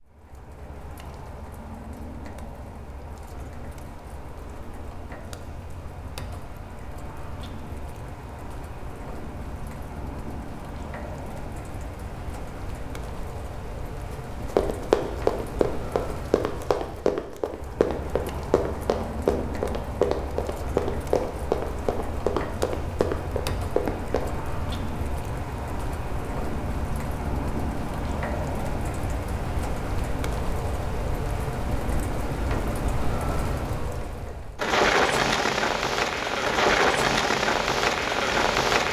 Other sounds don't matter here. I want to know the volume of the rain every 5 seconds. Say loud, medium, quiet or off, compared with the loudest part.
quiet, quiet, quiet, quiet, quiet, medium, medium, loud.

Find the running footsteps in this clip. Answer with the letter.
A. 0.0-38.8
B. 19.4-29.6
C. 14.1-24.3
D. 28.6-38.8
C.